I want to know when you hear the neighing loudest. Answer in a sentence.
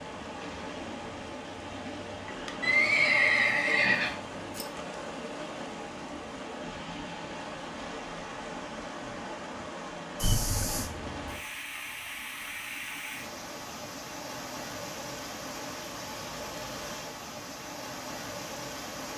The loudest moment of the neighing is at 3 seconds.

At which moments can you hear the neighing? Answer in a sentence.
The neighing can be heard from 2.6 to 4.7 s and from 10.2 to 10.9 s.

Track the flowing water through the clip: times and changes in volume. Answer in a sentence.
You can hear the flowing water from 0.0 to 19.1 s, at a steady volume.